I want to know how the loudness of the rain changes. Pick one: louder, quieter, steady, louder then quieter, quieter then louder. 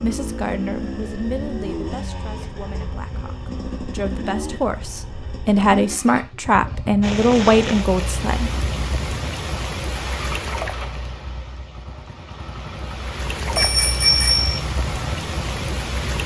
quieter then louder.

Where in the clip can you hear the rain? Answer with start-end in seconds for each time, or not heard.
7.0-16.2.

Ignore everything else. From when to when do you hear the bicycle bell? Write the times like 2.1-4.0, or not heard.
13.6-14.6.